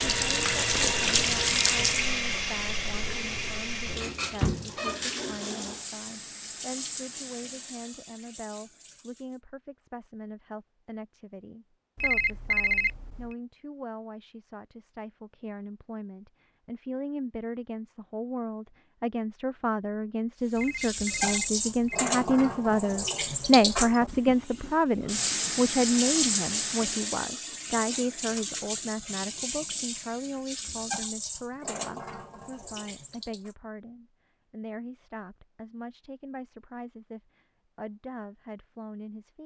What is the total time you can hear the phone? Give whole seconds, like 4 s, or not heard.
3 s.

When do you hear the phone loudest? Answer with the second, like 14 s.
13 s.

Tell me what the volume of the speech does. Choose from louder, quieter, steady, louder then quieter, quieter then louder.
louder then quieter.